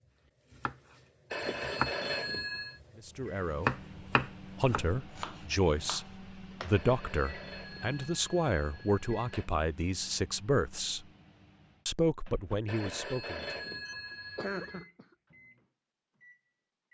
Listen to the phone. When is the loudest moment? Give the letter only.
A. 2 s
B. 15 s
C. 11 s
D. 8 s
A.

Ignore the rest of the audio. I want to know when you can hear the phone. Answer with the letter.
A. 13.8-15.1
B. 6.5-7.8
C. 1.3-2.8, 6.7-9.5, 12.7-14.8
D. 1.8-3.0
C.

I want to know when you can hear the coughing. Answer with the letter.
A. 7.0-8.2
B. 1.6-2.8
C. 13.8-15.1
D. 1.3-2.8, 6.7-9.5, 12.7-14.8
C.